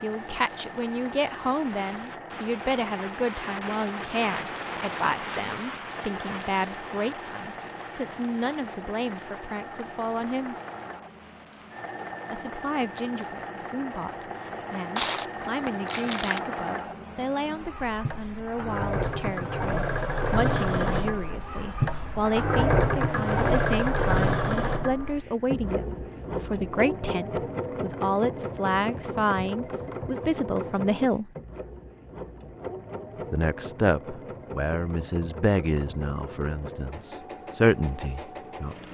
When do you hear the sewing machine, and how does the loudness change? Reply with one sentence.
You can hear the sewing machine from 0.0 to 38.8 s, getting louder then quieter.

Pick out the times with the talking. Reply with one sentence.
The talking can be heard from 0.0 to 10.6 s, from 12.3 to 31.3 s and from 33.3 to 38.8 s.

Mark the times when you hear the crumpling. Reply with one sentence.
The crumpling can be heard from 14.9 to 16.4 s.